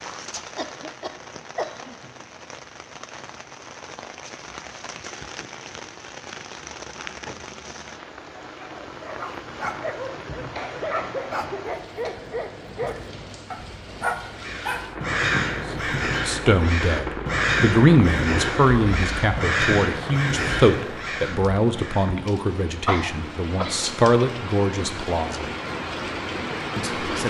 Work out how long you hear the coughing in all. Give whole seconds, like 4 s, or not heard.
4 s.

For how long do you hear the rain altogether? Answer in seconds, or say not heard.
27 s.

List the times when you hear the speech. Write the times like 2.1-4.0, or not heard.
16.2-25.5, 26.8-27.2.